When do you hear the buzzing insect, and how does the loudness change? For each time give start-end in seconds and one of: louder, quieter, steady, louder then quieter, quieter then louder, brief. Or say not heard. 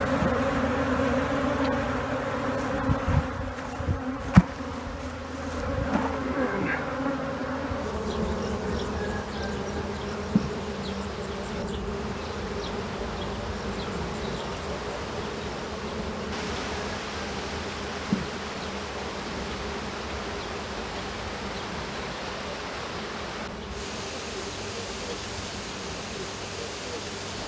0.0-27.4 quieter.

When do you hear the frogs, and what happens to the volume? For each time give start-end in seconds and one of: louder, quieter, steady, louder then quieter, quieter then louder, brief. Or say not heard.
not heard.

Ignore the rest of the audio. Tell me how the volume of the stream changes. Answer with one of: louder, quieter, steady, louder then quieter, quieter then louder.
louder.